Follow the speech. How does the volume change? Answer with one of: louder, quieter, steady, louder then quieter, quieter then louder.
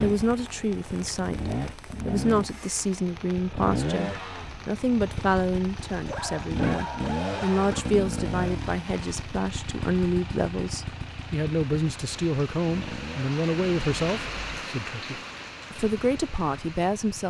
steady.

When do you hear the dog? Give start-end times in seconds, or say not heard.
6.0-7.9.